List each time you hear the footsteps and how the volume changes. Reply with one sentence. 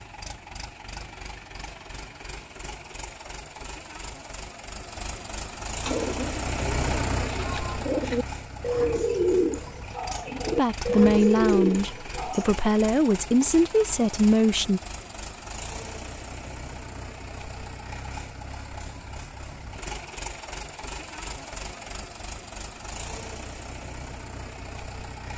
You can't hear the footsteps here.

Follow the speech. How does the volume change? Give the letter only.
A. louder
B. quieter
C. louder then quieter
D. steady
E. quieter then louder
E.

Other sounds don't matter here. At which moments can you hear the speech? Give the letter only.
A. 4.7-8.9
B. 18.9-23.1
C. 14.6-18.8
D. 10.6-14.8
D.